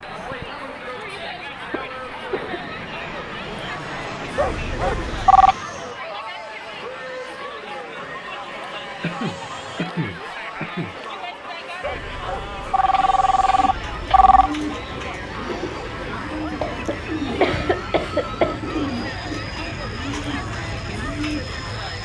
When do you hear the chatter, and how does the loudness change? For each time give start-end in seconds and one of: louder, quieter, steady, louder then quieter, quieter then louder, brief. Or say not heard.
0.0-22.0 steady.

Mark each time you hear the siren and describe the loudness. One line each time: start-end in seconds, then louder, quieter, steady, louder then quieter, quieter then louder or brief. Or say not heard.
not heard.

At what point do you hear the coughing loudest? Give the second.
18 s.